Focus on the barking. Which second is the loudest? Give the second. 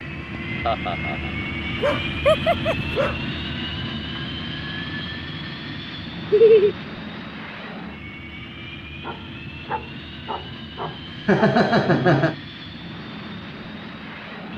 2 s.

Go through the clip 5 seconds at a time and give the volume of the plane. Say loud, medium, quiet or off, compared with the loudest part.
loud, medium, medium.